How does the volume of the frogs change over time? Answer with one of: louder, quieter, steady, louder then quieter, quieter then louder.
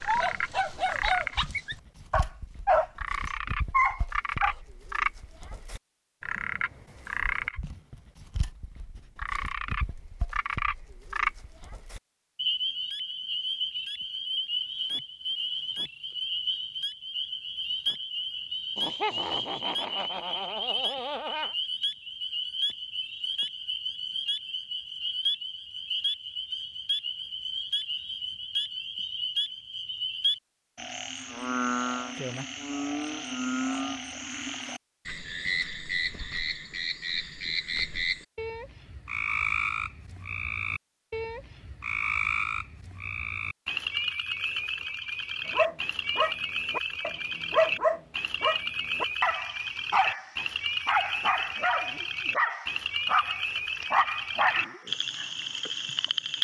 steady.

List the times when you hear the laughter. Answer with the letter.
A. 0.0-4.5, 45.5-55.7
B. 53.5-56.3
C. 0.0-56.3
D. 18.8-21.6
D.